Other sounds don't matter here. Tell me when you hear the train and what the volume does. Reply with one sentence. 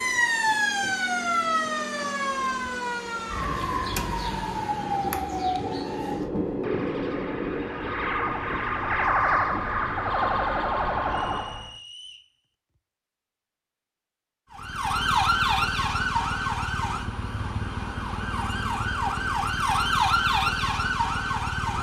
The train can be heard from 0.0 to 11.4 s, getting louder then quieter.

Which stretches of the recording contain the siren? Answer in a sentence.
The siren can be heard from 0.0 to 11.8 s and from 14.5 to 21.7 s.